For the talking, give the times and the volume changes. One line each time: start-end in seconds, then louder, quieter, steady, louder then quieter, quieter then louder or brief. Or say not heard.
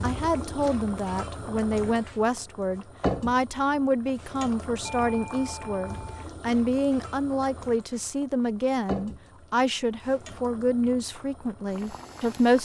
0.0-12.5 steady.